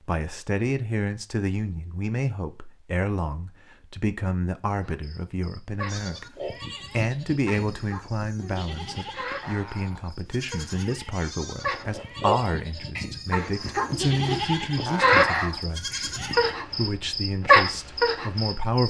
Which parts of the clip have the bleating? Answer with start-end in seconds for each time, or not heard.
5.8-16.6.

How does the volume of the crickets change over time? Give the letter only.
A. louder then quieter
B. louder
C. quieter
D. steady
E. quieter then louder
B.